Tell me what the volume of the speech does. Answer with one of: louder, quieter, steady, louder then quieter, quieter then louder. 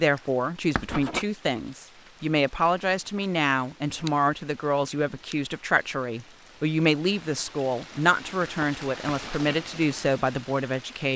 steady.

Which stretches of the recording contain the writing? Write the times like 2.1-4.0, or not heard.
0.8-1.2, 9.1-9.6.